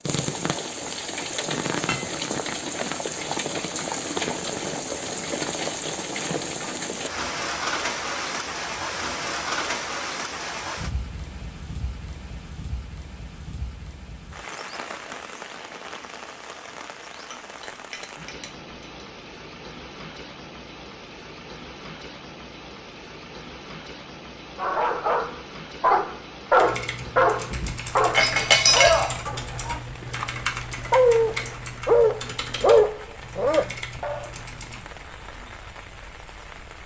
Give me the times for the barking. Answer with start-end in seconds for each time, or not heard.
24.6-34.2.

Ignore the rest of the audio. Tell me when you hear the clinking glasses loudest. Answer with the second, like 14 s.
29 s.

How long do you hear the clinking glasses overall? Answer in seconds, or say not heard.
4 s.